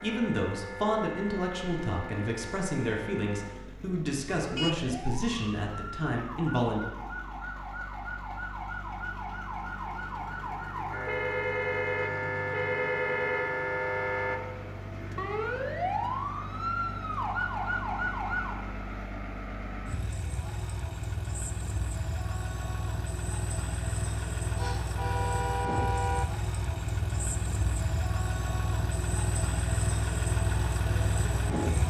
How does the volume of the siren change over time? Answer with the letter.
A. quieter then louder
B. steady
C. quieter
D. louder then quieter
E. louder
E.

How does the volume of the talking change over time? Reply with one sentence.
The loudness of the talking stays about the same.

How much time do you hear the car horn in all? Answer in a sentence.
You can hear the car horn for 5 seconds altogether.